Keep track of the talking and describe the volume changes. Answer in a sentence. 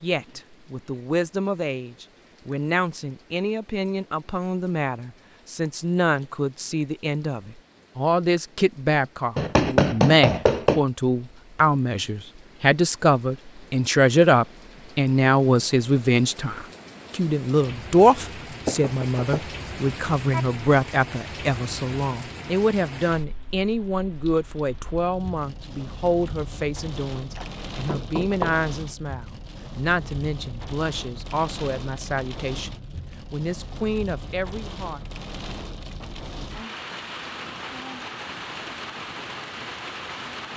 The volume of the talking goes up, then down.